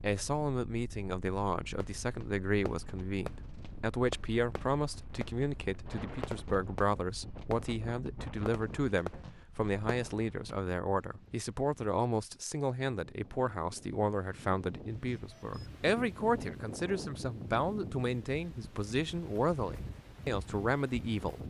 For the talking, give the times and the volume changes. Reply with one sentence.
You can hear the talking from 0.0 to 21.4 s, at a steady volume.